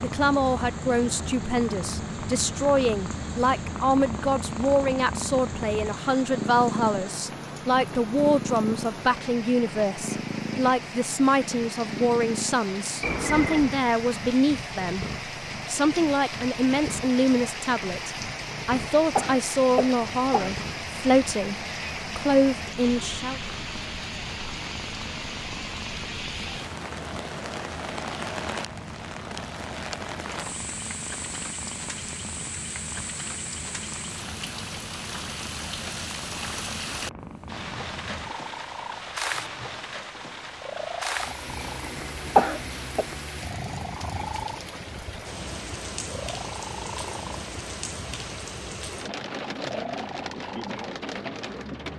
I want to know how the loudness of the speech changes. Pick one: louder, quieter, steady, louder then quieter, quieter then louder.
steady.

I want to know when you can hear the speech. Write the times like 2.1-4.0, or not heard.
0.0-15.1, 15.7-23.4.